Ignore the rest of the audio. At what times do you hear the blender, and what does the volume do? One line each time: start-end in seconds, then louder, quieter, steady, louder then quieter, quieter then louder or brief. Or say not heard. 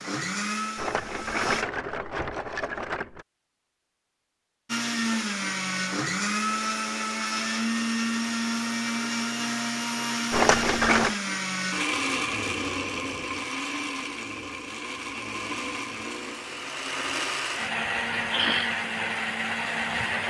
0.0-1.6 brief
4.7-20.2 quieter then louder.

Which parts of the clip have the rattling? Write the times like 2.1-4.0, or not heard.
0.8-3.2, 10.3-11.2.